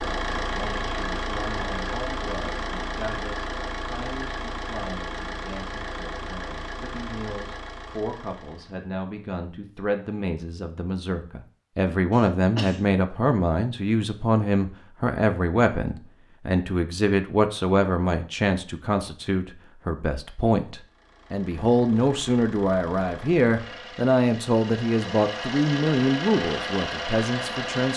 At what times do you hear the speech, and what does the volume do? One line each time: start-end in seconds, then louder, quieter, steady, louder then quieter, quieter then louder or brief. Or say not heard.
0.0-27.9 louder.